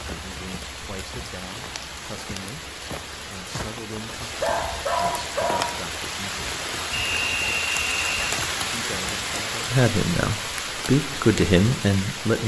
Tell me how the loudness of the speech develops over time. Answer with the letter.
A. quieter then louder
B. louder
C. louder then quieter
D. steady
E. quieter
B.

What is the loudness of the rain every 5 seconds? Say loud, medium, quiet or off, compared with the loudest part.
medium, loud, loud.